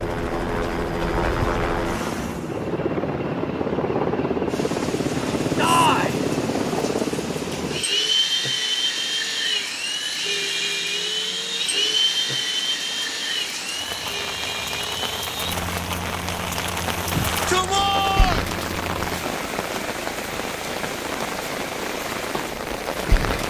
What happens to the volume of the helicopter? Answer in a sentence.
The volume of the helicopter goes down.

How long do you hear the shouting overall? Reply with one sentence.
You can hear the shouting for 2 seconds altogether.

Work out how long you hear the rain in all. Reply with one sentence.
The rain can be heard for 19 seconds in total.